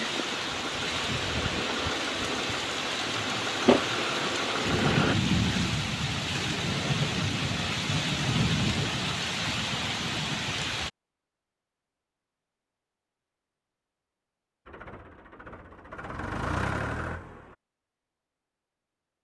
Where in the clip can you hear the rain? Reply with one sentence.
You can hear the rain from 0.0 to 10.9 s.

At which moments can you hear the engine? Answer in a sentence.
The engine can be heard from 0.0 to 5.2 s and from 14.7 to 17.6 s.